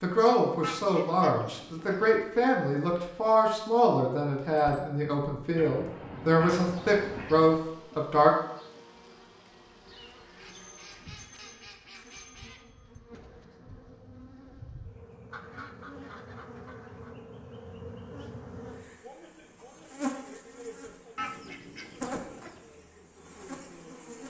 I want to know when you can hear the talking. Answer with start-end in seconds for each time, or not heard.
0.0-8.3.